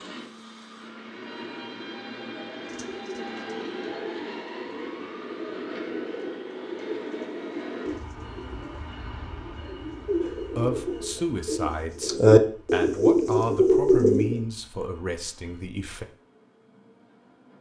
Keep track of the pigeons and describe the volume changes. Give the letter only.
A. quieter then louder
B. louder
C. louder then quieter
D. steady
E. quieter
B.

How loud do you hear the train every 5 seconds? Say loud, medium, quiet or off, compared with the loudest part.
loud, loud, quiet, quiet.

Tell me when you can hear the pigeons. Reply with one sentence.
The pigeons can be heard from 2.5 to 14.4 s.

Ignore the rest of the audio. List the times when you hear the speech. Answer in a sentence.
The speech can be heard from 10.2 to 16.1 s.